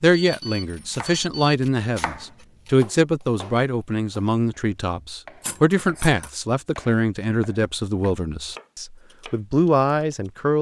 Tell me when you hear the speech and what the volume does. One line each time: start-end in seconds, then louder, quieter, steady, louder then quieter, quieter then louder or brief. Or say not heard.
0.0-10.5 steady.